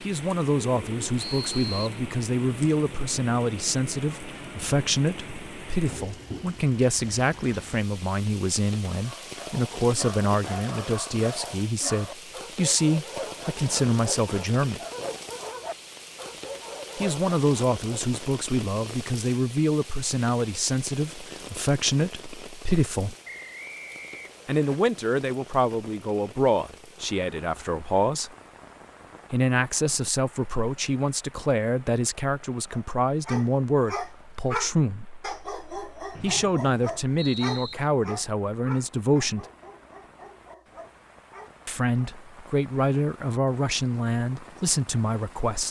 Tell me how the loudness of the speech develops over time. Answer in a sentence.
The volume of the speech stays about the same.